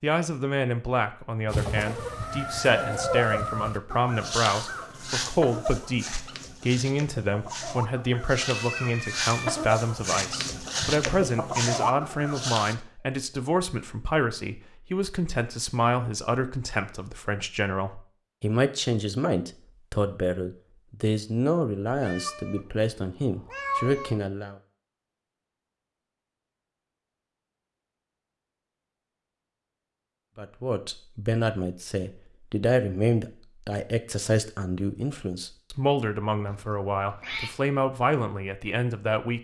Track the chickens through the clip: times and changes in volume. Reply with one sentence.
The chickens can be heard from 1.4 to 12.8 s, getting quieter then louder.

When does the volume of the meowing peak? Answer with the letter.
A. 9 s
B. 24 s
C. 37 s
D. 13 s
B.